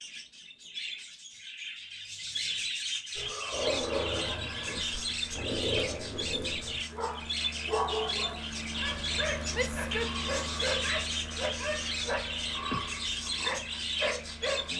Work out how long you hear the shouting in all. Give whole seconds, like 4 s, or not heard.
3 s.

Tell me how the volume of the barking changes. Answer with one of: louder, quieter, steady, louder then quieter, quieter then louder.
steady.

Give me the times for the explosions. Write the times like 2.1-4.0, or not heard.
not heard.